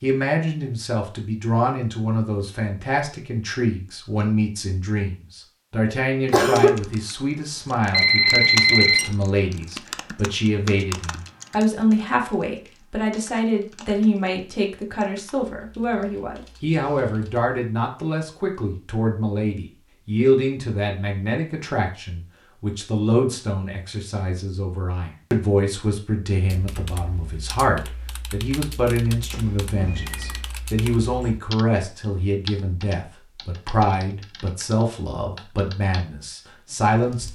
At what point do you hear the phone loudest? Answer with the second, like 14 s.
9 s.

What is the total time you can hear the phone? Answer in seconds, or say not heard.
2 s.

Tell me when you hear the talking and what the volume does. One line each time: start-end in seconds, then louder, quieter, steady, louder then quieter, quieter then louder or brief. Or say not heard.
0.0-37.3 steady.